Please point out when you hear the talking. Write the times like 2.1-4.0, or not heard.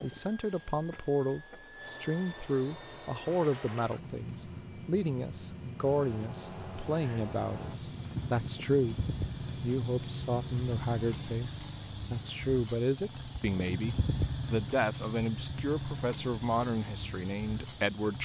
0.0-9.0, 9.6-18.1.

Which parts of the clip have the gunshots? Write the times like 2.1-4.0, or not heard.
not heard.